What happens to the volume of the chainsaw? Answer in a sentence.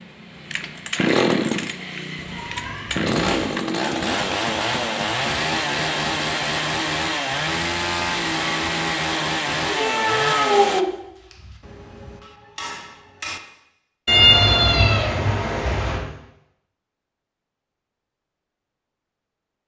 The loudness of the chainsaw stays about the same.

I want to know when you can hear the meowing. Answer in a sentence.
You can hear the meowing from 2.4 to 3.5 s, from 9.7 to 11.6 s and from 14.1 to 16.0 s.